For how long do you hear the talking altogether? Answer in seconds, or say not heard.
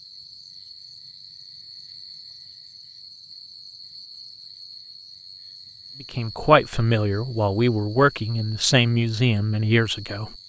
4 s.